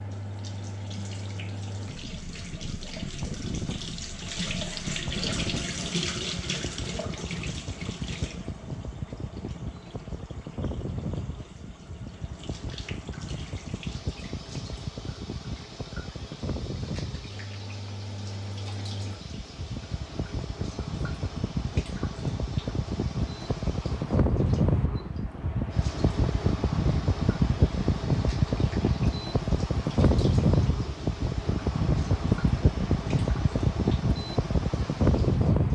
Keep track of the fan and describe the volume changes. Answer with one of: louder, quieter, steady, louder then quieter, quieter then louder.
louder.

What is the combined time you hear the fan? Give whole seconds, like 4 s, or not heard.
36 s.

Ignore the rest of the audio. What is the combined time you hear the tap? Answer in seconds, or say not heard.
36 s.